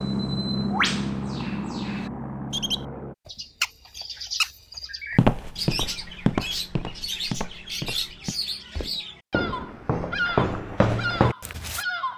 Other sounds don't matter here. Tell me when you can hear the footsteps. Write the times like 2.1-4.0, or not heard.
5.2-11.8.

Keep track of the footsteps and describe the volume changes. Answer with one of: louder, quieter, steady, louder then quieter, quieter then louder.
quieter then louder.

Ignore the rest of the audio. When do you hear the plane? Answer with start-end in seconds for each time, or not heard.
0.0-3.1.